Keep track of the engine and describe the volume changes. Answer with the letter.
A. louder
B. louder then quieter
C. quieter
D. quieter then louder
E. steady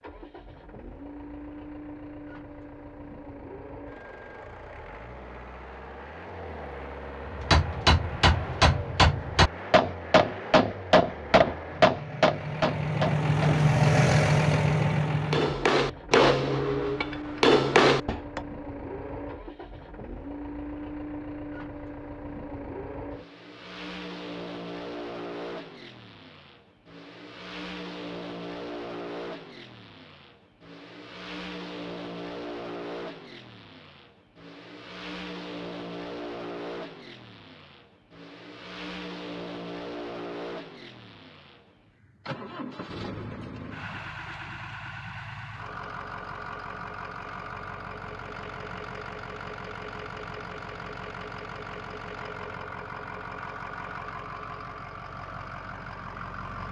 B.